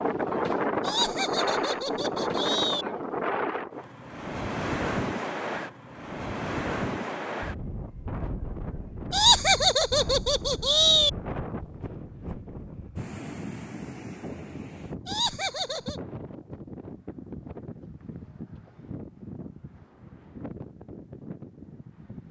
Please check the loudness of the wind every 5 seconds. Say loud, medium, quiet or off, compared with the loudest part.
loud, medium, medium, quiet, quiet.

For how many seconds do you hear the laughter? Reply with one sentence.
The laughter can be heard for 5 seconds in total.